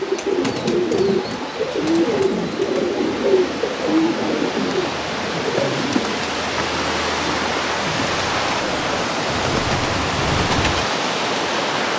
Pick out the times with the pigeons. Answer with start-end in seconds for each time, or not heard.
0.0-10.9.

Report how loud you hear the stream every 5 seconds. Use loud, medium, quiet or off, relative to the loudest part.
medium, loud, loud.